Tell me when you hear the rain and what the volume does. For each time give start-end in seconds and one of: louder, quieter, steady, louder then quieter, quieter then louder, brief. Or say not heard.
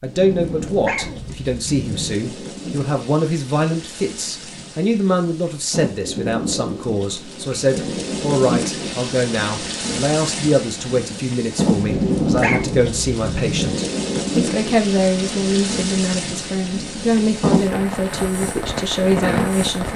0.1-19.9 louder.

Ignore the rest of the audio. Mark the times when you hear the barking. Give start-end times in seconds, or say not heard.
0.2-2.1, 11.8-13.7.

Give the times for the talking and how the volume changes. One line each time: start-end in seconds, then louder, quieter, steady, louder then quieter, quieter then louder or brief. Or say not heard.
0.0-19.9 steady.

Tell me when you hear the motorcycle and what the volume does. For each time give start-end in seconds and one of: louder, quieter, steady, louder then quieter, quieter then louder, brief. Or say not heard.
not heard.